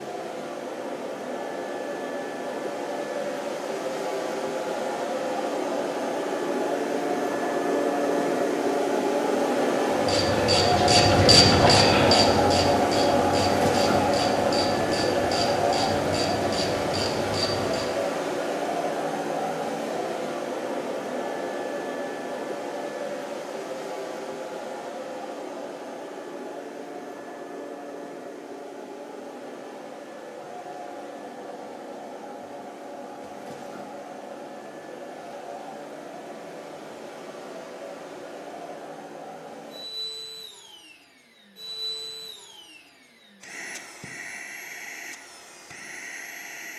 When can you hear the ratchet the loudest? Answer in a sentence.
The volume of the ratchet peaks at 11 seconds.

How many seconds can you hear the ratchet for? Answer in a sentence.
You can hear the ratchet for 8 seconds altogether.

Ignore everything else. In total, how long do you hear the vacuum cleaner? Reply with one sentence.
The vacuum cleaner can be heard for 47 seconds in total.